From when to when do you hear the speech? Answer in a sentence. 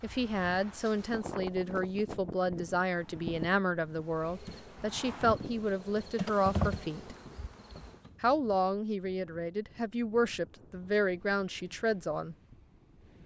The speech can be heard from 0.0 to 7.2 s and from 8.2 to 12.3 s.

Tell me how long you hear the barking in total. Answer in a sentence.
The barking can't be heard in this clip.